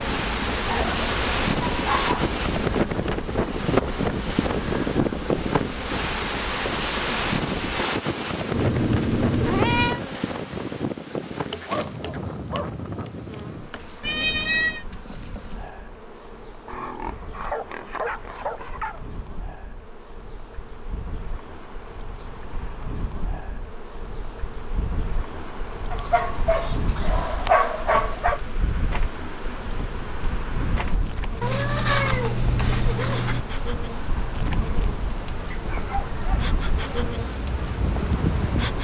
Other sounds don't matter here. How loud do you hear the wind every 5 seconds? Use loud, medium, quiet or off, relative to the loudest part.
loud, loud, medium, quiet, quiet, quiet, medium, medium.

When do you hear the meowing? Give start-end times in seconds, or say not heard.
8.5-10.0, 14.0-14.8, 31.4-33.4.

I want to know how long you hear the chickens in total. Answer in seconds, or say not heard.
not heard.